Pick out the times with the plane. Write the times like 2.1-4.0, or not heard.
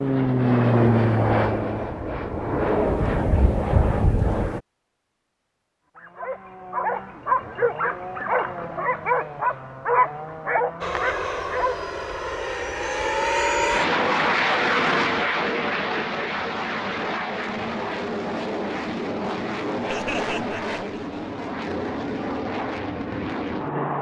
0.0-4.6, 10.8-23.9.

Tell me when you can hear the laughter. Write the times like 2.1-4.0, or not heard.
19.9-21.2.